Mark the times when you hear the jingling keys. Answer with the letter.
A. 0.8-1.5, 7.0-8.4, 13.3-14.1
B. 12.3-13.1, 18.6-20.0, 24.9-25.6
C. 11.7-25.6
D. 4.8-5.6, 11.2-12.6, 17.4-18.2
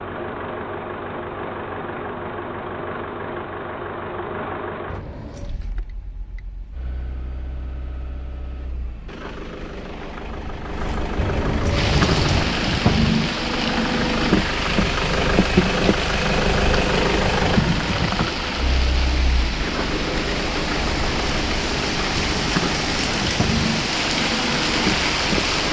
D.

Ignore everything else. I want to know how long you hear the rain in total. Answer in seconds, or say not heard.
14 s.